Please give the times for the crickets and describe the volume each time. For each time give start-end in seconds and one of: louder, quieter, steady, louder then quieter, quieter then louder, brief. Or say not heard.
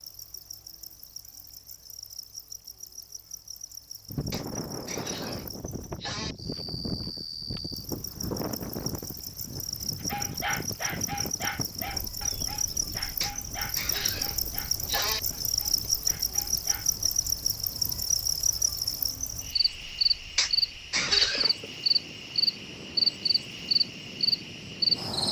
0.0-25.2 louder.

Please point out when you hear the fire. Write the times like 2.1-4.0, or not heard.
not heard.